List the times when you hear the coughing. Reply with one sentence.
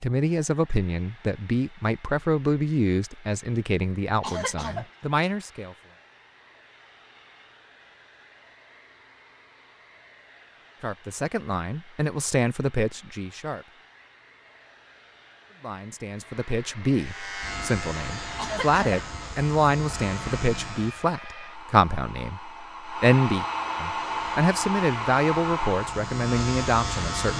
The coughing can be heard from 4.2 to 5.3 s and from 18.4 to 19.0 s.